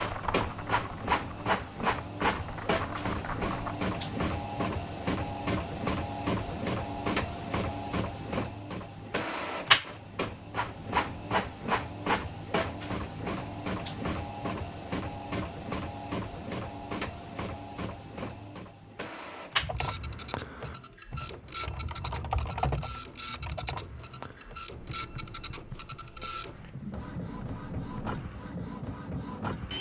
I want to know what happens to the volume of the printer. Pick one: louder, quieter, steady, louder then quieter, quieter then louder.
quieter.